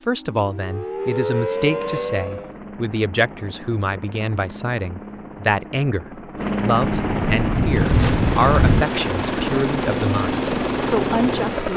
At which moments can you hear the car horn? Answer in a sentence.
You can't hear the car horn here.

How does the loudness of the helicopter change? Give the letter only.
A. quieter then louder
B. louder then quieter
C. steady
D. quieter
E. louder
E.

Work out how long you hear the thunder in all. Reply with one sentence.
You can hear the thunder for 2 seconds altogether.